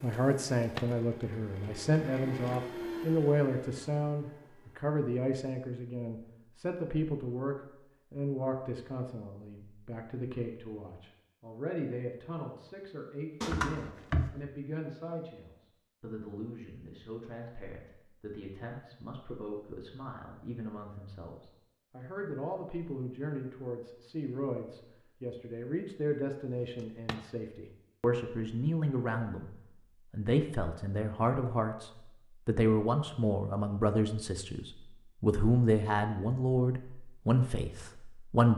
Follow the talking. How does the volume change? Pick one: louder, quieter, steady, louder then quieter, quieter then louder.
quieter then louder.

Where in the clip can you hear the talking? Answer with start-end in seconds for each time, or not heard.
0.0-38.5.